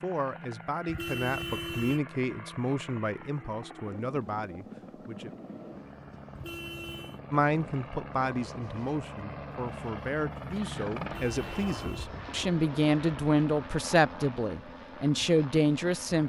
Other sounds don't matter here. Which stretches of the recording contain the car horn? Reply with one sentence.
You can hear the car horn from 0.8 to 2.0 s, from 6.3 to 7.2 s and from 11.0 to 12.1 s.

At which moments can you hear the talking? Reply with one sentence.
You can hear the talking from 0.0 to 5.4 s and from 7.3 to 16.2 s.